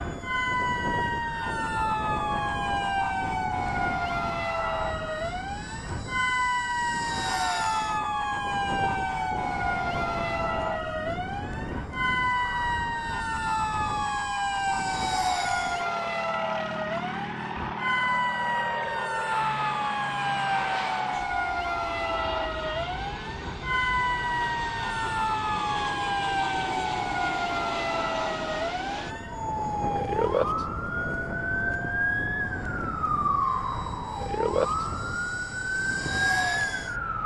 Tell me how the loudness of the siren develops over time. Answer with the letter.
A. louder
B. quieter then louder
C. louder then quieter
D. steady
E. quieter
D.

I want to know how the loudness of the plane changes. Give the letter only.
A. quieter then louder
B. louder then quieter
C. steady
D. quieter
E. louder
C.